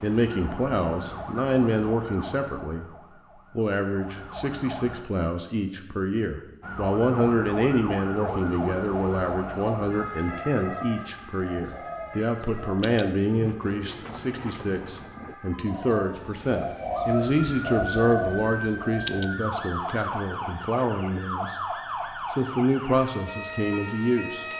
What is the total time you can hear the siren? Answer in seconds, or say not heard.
23 s.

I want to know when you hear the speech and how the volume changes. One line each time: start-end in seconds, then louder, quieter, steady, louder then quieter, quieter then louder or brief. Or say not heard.
0.0-2.9 brief
3.5-21.6 steady
22.3-24.5 brief.